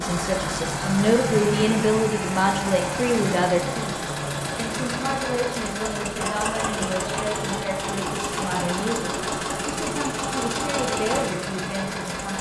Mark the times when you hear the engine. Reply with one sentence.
You can hear the engine from 0.0 to 12.3 s.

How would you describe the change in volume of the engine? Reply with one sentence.
The loudness of the engine stays about the same.